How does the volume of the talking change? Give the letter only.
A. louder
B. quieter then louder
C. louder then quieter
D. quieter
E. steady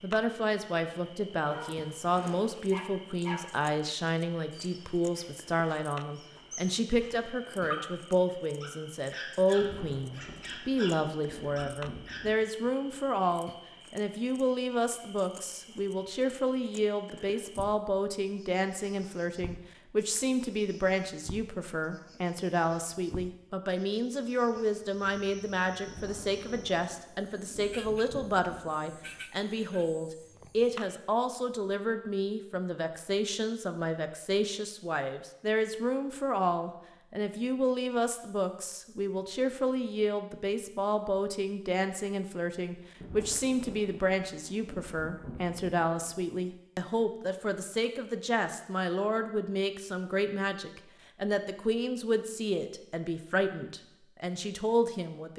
E.